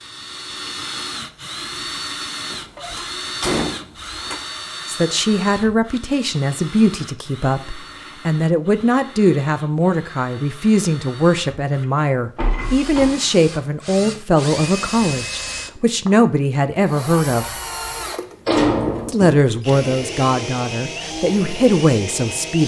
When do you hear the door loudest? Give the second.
19 s.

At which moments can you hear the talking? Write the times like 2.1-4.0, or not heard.
4.8-17.6, 19.1-22.6.